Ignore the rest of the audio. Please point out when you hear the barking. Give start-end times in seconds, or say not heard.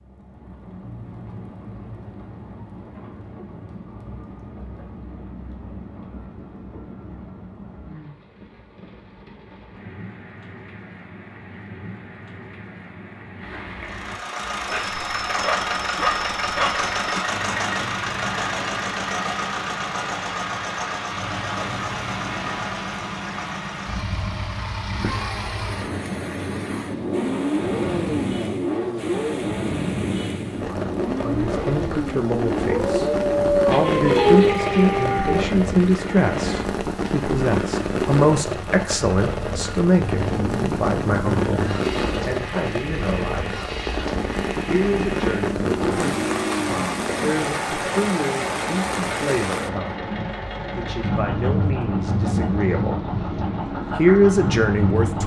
14.7-17.2, 32.6-35.5.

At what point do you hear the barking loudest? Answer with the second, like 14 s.
34 s.